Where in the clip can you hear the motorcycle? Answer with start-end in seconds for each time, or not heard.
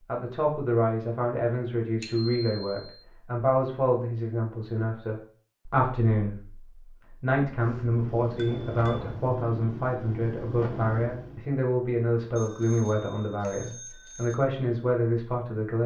7.6-11.4.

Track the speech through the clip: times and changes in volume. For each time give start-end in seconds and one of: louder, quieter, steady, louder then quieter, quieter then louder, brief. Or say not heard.
0.1-15.8 steady.